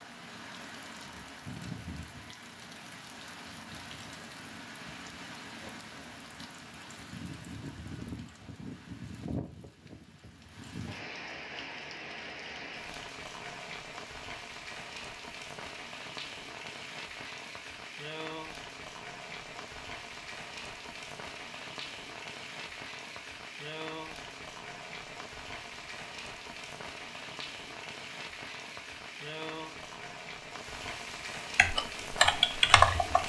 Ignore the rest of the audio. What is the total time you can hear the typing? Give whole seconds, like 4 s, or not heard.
2 s.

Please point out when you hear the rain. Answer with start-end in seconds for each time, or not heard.
0.0-33.2.